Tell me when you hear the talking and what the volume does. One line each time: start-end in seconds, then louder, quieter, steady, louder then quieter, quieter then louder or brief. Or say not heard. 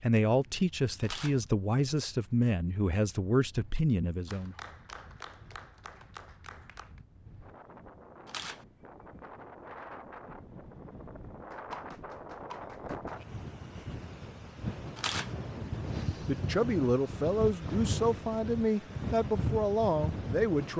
0.0-4.5 steady
15.5-20.7 steady.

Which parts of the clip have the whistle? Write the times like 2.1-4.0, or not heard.
not heard.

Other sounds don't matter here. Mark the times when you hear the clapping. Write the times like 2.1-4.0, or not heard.
4.2-7.0, 11.5-13.2.